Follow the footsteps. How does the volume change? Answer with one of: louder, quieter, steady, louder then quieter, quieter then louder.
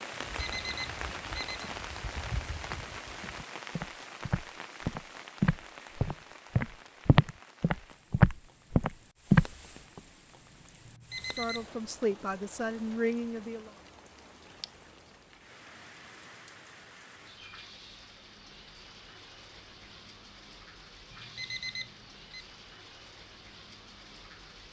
louder.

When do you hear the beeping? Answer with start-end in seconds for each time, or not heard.
0.1-1.6, 10.8-11.8, 21.1-22.4.